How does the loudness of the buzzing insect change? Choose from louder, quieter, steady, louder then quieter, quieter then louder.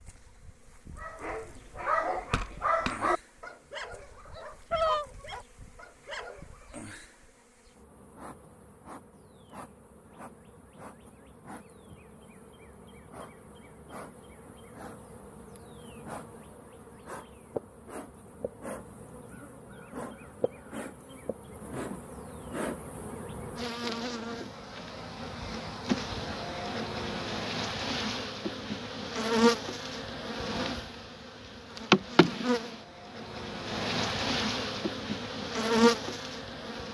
louder.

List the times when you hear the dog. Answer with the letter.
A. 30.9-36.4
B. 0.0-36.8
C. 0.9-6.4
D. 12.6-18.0
C.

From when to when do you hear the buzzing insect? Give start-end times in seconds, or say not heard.
0.0-36.8.